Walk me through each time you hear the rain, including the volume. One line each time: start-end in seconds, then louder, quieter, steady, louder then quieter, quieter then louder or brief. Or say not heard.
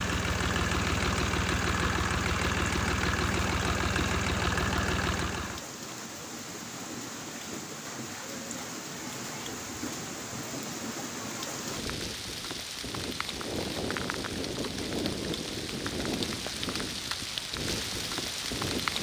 0.0-18.9 louder.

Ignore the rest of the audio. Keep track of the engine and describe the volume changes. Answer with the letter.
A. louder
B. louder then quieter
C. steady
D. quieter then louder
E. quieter
C.